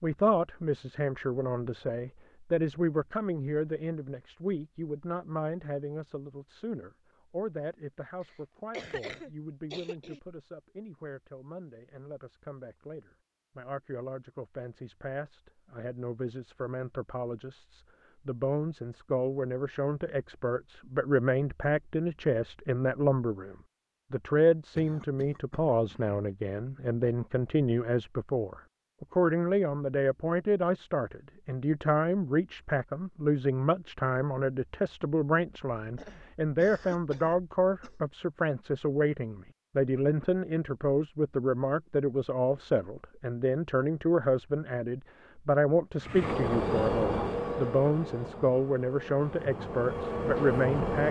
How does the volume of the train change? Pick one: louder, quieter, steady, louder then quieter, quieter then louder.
quieter then louder.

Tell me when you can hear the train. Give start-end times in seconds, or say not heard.
46.0-51.0.